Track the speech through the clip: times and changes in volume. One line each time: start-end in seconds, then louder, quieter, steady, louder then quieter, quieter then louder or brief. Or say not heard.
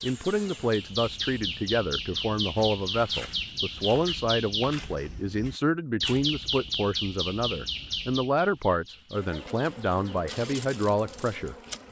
0.0-11.8 steady.